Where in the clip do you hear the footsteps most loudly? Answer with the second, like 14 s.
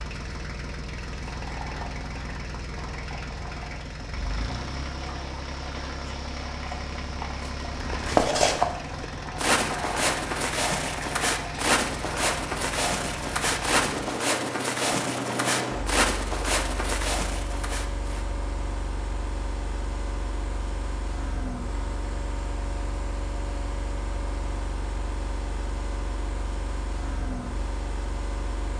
8 s.